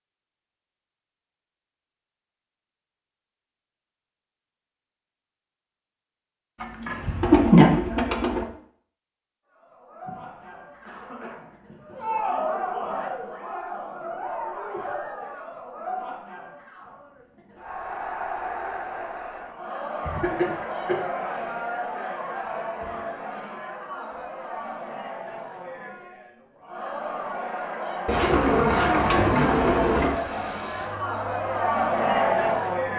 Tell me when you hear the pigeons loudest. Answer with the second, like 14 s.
7 s.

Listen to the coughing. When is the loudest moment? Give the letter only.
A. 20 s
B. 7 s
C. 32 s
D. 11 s
A.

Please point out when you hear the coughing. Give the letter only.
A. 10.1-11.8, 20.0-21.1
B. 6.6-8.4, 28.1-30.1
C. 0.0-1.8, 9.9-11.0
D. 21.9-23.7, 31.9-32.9
A.